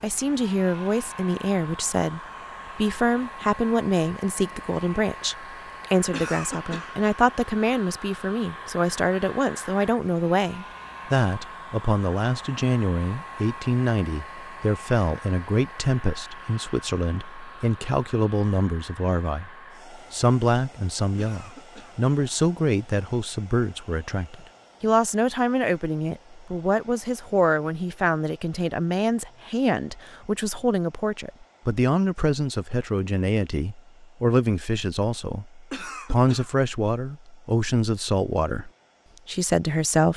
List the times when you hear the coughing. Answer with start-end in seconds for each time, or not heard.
6.1-7.0, 21.1-22.0, 35.7-36.5.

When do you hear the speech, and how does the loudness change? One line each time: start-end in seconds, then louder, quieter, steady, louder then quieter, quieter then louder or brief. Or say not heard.
0.0-40.1 steady.